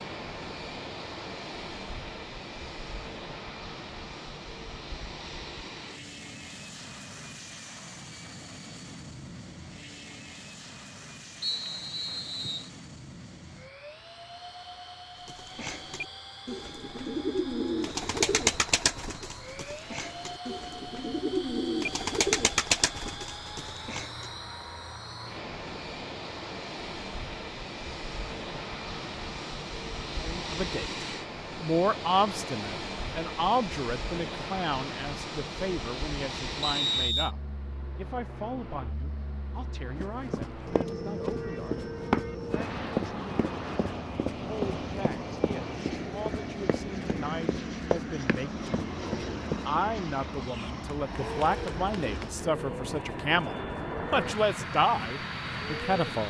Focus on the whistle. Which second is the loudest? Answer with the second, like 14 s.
37 s.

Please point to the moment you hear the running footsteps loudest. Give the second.
42 s.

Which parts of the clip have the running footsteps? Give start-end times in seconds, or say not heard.
40.0-49.6.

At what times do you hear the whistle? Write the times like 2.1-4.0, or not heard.
11.4-12.7, 36.6-37.3.